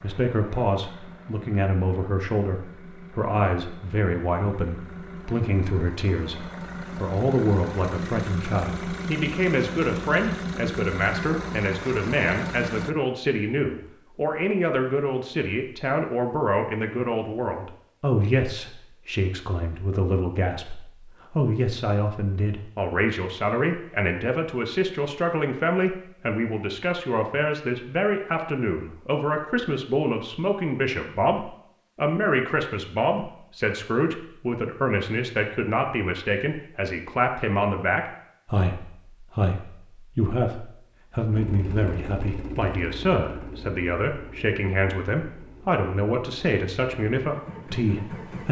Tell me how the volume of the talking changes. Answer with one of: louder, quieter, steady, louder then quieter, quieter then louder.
steady.